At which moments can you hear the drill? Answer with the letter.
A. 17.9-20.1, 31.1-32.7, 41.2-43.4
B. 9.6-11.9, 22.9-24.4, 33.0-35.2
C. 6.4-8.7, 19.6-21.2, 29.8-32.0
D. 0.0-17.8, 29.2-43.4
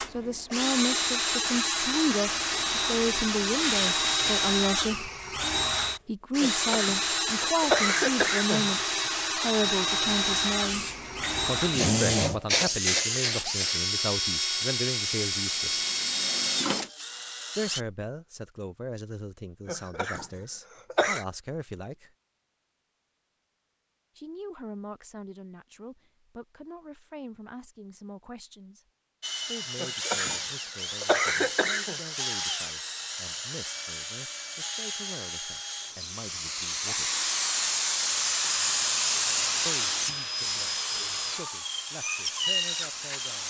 D.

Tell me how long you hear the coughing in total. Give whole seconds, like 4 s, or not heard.
6 s.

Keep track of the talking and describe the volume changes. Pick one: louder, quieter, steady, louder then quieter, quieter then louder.
quieter.